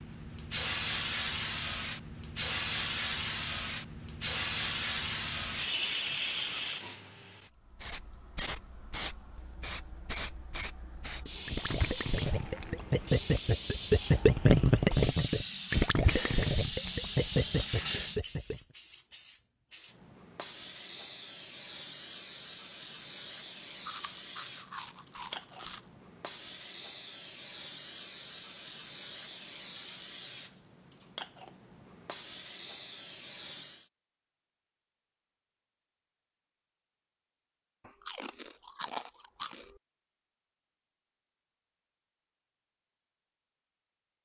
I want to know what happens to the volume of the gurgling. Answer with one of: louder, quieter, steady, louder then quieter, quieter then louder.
louder then quieter.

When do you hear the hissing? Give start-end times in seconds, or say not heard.
0.0-33.9.